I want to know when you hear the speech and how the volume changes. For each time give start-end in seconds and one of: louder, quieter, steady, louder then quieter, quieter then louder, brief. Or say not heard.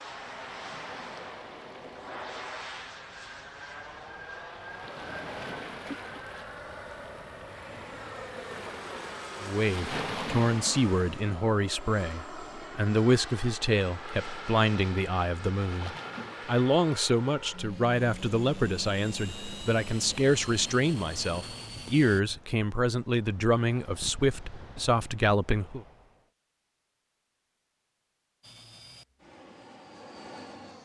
9.4-25.9 steady.